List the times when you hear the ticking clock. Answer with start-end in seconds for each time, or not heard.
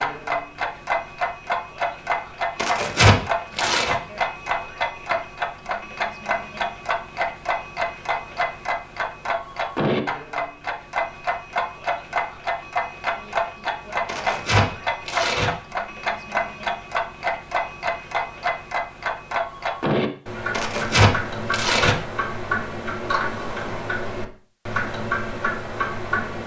0.0-26.4.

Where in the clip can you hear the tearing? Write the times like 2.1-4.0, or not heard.
2.5-4.0, 14.1-15.5, 20.5-21.9.